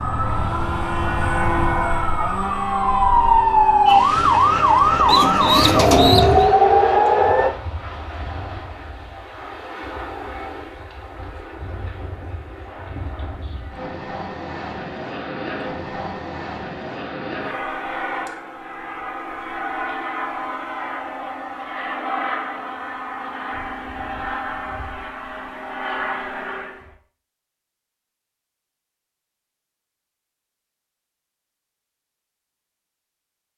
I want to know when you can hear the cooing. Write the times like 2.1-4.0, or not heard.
5.0-6.6.